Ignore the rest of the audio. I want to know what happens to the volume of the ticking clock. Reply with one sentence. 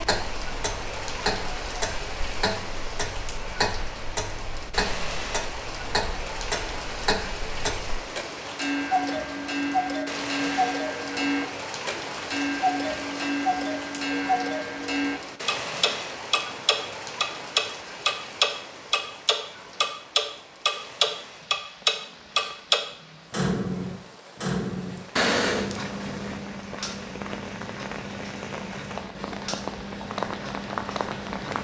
The volume of the ticking clock goes up, then down.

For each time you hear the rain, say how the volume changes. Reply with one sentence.
You can hear the rain from 0.0 to 31.5 s, getting quieter then louder.